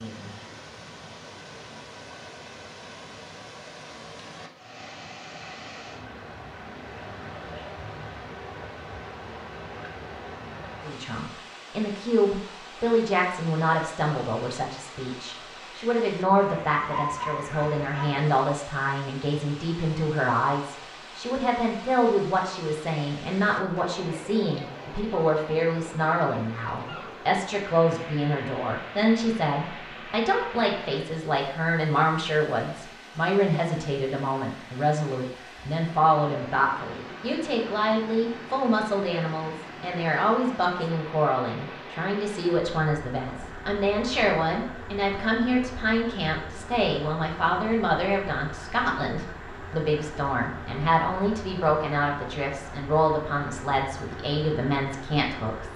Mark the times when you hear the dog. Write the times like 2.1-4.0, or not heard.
16.9-18.2.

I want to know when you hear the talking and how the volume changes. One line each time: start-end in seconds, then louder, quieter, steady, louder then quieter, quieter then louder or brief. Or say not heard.
10.8-55.7 steady.